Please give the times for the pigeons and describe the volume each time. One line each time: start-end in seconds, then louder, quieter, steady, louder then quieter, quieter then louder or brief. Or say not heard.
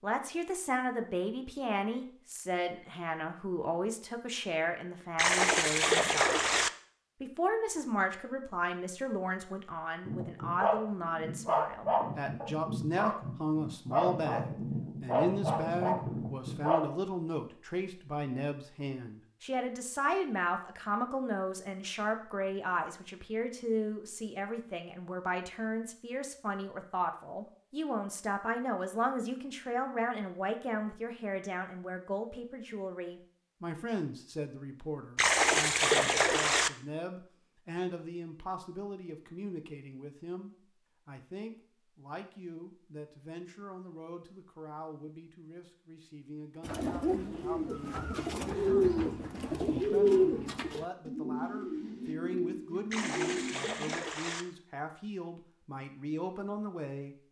46.6-54.0 louder then quieter.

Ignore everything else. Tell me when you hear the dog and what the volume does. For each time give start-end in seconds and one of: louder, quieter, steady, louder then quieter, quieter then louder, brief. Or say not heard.
10.1-16.9 steady.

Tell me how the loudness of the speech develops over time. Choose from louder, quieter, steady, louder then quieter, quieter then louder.
quieter.